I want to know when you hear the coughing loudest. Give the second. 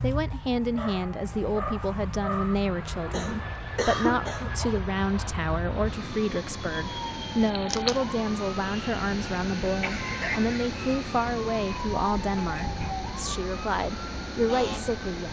4 s.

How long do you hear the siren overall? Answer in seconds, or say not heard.
15 s.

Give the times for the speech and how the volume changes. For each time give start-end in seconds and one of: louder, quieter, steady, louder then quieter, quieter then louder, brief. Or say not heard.
0.0-15.2 steady.